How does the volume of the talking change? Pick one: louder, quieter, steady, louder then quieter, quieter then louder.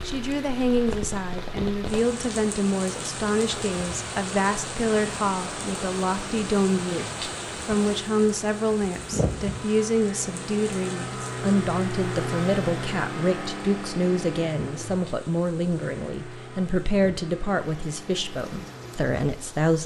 steady.